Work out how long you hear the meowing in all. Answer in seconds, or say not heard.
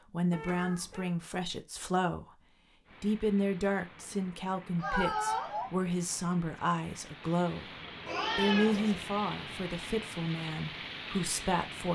3 s.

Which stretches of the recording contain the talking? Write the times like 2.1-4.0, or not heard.
0.1-2.4, 3.0-7.7, 8.3-11.9.